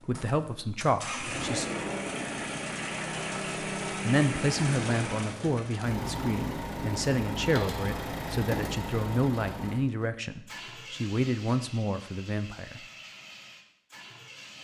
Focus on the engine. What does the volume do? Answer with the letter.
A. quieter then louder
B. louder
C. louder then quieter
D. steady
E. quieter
E.